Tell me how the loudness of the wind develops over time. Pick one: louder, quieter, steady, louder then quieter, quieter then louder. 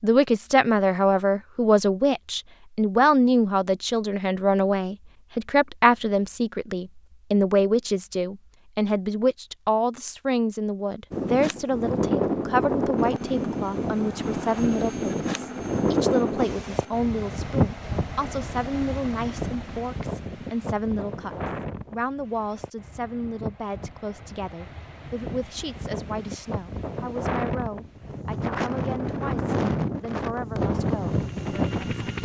quieter then louder.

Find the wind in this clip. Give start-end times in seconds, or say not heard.
11.1-32.1.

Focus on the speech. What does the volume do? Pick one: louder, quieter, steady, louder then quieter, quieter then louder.
quieter.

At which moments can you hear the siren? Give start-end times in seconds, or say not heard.
not heard.